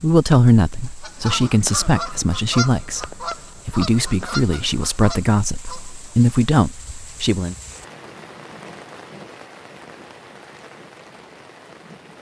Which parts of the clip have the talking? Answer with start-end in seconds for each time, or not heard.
0.0-7.5.